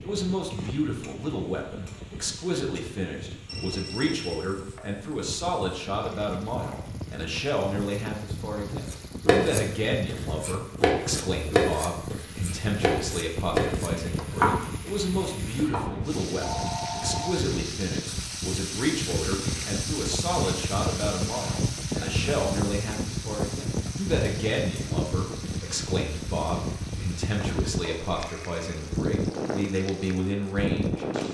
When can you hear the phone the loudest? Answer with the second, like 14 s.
17 s.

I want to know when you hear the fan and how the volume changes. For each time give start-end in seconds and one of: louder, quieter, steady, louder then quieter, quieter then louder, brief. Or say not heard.
0.0-31.2 louder.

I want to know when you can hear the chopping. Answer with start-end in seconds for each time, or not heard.
8.9-15.8.